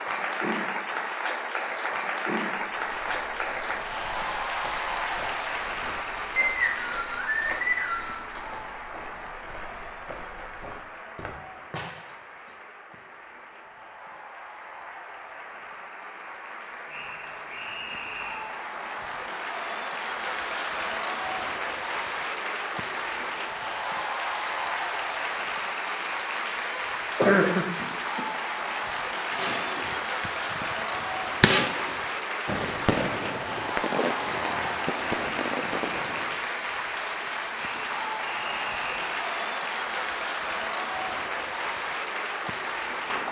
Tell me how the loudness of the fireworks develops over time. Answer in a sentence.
The volume of the fireworks goes up, then down.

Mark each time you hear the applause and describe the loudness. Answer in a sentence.
You can hear the applause from 0.0 to 43.2 s, getting quieter then louder.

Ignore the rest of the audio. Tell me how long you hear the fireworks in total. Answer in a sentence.
The fireworks can be heard for 7 seconds in total.